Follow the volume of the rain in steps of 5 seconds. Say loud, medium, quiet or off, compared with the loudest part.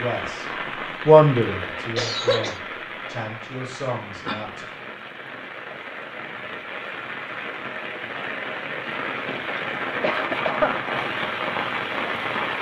medium, medium, loud.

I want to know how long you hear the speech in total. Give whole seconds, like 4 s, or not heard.
4 s.